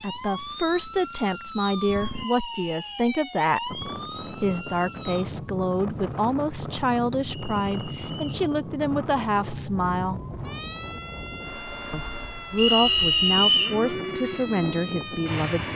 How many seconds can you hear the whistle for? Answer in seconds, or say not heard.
3 s.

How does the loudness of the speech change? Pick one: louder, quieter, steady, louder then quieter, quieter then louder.
steady.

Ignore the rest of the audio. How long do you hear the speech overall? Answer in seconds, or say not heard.
14 s.